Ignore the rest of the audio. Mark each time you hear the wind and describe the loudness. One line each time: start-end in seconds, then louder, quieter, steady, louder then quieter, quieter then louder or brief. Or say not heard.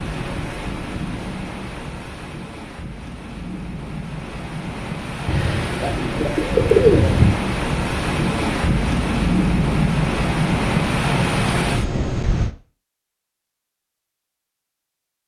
0.0-12.5 louder.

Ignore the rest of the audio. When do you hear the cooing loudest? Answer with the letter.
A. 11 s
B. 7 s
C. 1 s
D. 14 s
B.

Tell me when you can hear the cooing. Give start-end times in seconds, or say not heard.
5.2-7.3.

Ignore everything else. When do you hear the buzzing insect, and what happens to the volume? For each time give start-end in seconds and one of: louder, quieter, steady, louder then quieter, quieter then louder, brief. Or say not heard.
not heard.